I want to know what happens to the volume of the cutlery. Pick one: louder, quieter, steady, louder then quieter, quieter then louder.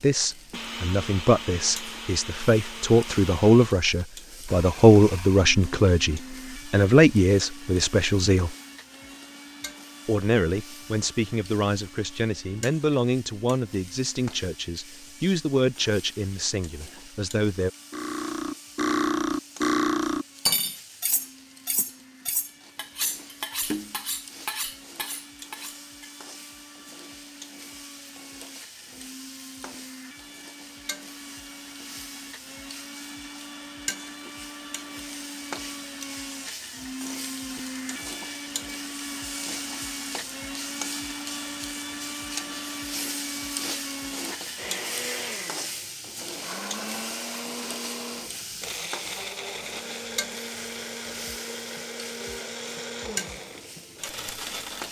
quieter.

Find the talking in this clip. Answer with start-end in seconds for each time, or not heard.
0.0-8.6, 10.1-17.7.